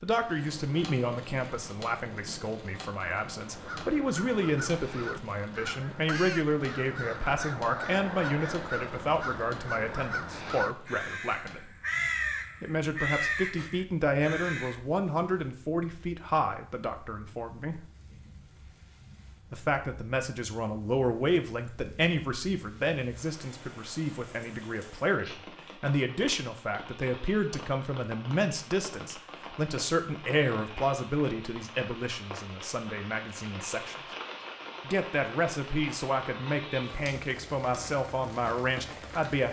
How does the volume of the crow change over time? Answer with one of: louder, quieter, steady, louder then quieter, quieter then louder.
louder.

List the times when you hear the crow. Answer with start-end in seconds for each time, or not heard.
3.4-14.8.